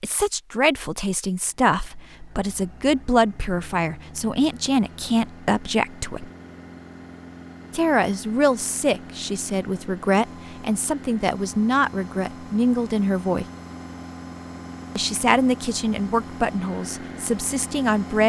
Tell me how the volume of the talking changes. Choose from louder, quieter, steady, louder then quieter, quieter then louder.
steady.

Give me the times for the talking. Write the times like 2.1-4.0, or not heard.
0.0-6.3, 7.7-13.4, 14.9-18.2.